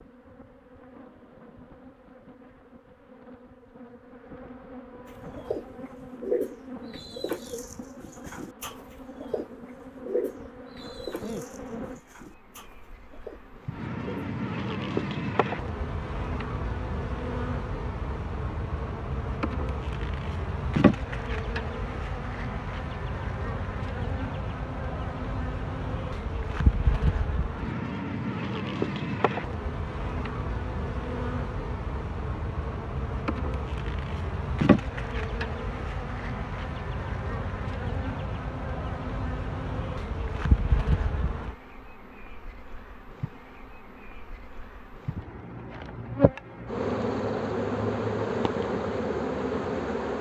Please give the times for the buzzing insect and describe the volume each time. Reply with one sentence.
You can hear the buzzing insect from 0.0 to 50.1 s, getting louder.